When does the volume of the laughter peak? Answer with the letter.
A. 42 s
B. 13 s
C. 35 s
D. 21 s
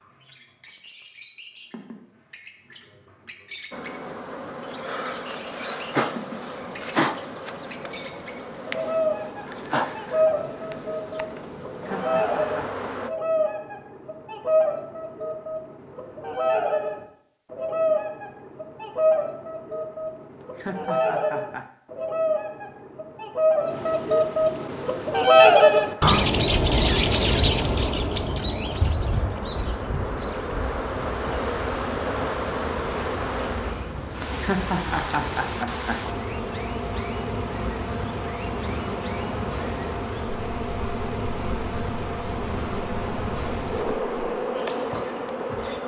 C.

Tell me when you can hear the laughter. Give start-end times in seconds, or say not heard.
11.8-12.8, 20.4-21.7, 34.4-36.0.